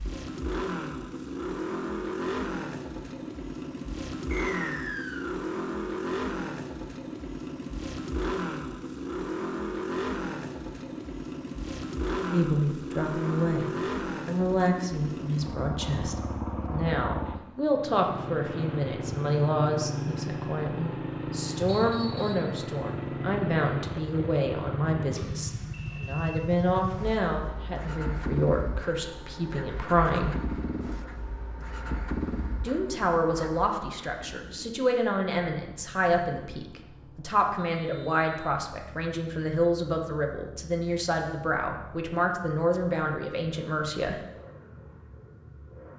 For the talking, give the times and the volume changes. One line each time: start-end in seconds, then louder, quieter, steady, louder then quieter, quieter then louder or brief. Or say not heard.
12.3-30.4 steady
32.6-44.2 steady.